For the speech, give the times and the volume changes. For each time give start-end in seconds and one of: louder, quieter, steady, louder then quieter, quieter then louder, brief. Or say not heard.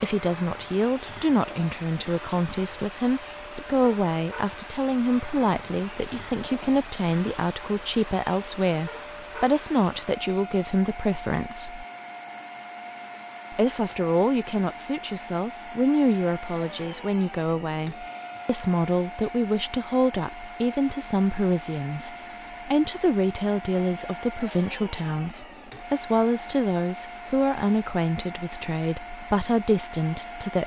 0.0-11.8 steady
13.5-30.6 steady.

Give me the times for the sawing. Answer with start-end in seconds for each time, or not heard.
not heard.